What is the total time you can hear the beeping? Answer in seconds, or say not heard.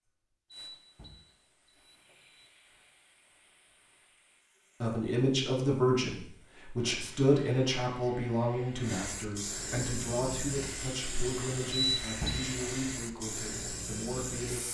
3 s.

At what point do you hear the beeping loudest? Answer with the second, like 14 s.
12 s.